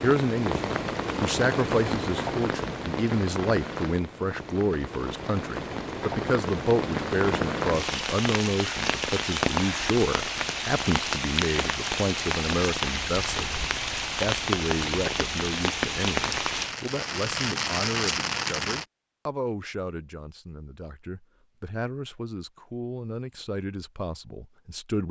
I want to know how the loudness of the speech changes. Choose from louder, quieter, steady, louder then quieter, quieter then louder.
quieter.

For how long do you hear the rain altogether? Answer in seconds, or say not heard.
19 s.